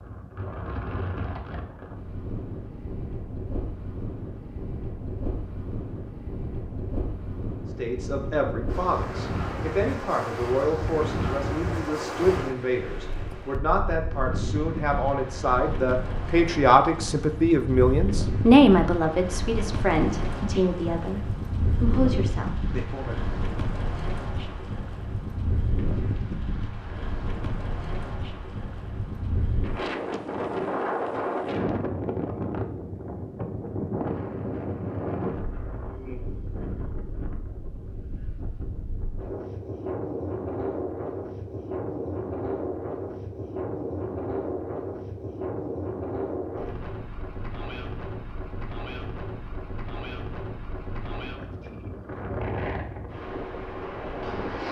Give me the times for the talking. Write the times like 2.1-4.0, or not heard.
7.8-23.4.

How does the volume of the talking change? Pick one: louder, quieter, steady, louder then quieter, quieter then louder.
louder then quieter.